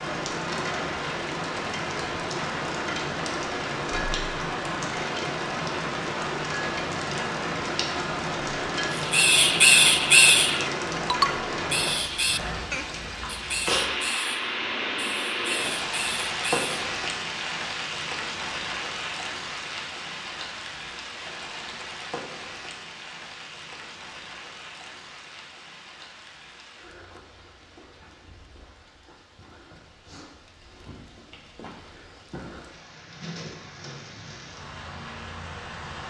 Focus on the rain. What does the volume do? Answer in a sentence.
The loudness of the rain goes down.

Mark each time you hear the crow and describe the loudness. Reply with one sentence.
The crow can be heard from 8.9 to 16.8 s, getting quieter.